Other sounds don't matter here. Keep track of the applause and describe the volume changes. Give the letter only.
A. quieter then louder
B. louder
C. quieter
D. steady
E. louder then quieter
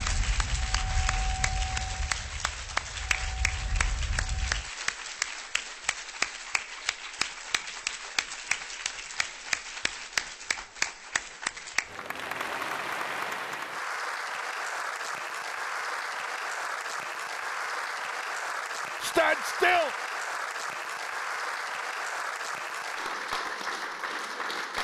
D.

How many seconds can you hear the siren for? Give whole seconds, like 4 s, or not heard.
5 s.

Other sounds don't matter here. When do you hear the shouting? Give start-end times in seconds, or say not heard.
19.0-19.9.